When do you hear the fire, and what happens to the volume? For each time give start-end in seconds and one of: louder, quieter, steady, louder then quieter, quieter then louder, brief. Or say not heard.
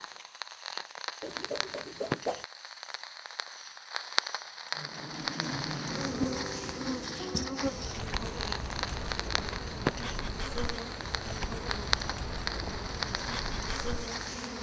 0.0-14.5 steady.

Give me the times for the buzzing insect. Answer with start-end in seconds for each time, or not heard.
4.8-14.5.